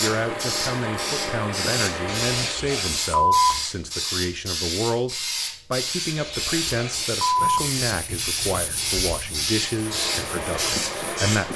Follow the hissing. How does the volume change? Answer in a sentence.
The loudness of the hissing stays about the same.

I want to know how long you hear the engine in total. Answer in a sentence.
You can hear the engine for 5 seconds altogether.